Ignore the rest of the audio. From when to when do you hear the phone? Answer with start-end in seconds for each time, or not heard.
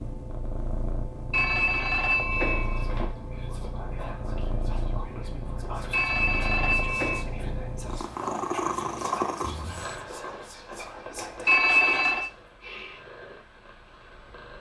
1.3-3.1, 5.9-7.2, 11.4-12.3.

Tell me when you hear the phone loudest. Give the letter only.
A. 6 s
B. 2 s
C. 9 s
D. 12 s
D.